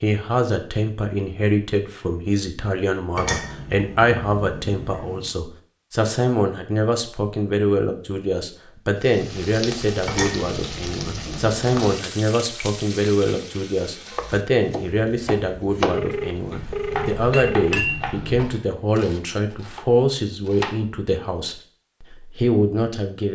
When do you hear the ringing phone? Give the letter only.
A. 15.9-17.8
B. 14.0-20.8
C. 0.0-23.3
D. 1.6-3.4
A.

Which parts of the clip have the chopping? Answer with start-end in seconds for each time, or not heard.
14.0-20.8.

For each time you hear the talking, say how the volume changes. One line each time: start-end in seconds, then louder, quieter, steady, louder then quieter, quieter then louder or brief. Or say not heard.
0.0-23.3 steady.